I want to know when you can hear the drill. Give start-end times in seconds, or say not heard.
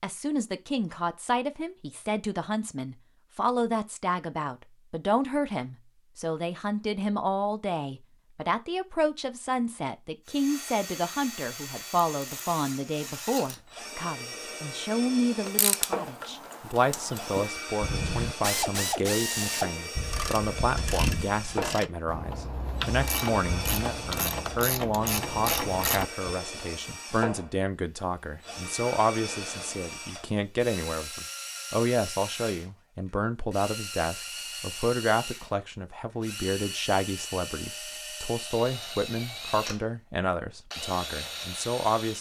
10.2-42.1.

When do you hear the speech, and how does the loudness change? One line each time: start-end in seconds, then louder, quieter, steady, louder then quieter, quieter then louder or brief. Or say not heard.
0.0-42.1 steady.